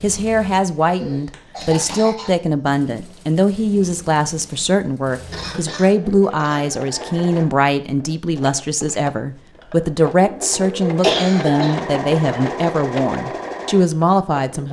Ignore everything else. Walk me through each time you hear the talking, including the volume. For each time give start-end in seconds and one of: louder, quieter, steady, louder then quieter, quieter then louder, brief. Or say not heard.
0.0-14.6 steady.